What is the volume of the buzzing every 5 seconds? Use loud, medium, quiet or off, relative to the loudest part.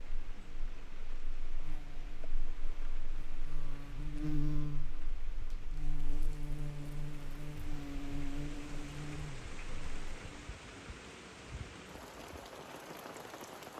loud, loud, off.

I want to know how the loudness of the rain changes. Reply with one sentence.
The volume of the rain goes up.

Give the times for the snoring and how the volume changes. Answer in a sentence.
You can't hear the snoring here.